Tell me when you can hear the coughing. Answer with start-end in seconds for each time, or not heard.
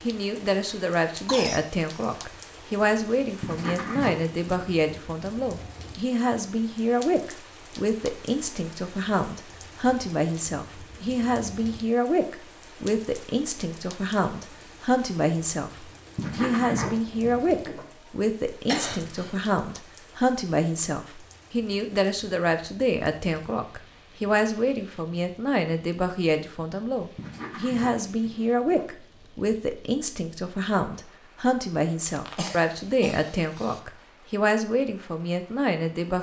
1.2-2.1, 18.6-19.4, 32.0-33.8.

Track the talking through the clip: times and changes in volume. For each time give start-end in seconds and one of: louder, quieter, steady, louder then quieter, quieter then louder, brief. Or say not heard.
0.0-36.1 steady.